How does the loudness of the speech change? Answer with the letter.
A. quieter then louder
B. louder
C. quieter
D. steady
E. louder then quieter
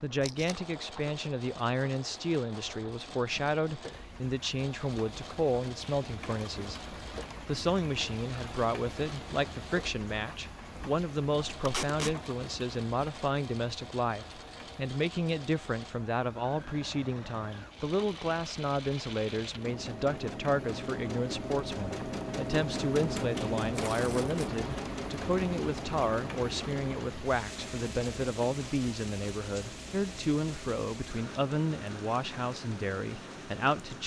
D.